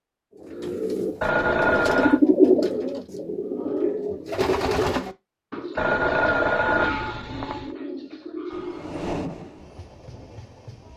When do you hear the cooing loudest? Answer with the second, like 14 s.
2 s.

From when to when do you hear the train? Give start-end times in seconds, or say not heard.
8.4-10.9.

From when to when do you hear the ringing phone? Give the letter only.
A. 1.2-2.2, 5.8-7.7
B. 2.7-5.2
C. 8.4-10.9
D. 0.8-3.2
A.